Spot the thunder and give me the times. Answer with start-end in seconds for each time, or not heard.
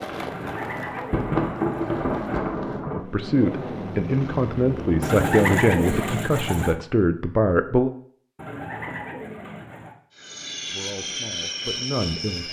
0.1-3.0.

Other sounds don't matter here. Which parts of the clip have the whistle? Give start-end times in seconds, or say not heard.
not heard.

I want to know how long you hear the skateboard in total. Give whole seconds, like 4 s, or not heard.
3 s.